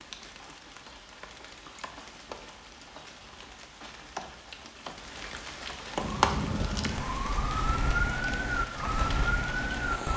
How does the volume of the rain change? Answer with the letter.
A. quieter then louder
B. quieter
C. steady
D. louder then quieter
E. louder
D.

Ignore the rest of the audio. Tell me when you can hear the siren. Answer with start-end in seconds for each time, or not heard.
6.0-10.1.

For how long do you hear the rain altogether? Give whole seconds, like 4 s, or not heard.
10 s.